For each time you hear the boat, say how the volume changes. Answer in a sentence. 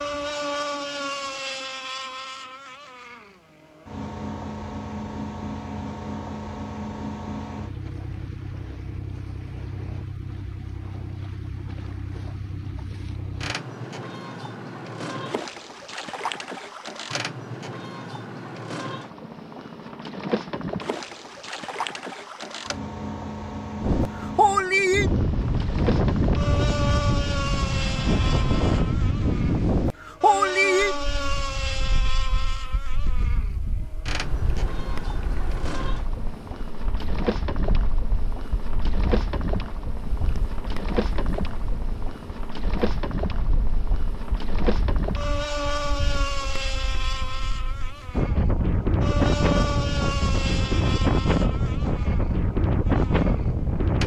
The boat can be heard from 0.0 to 54.0 s, at a steady volume.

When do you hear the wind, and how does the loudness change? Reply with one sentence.
You can hear the wind from 23.8 to 54.0 s, getting quieter then louder.